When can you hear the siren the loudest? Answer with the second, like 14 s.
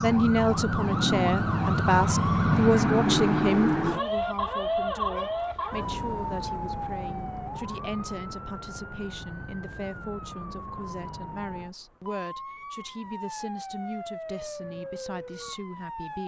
3 s.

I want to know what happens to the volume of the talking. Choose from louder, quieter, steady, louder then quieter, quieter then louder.
quieter.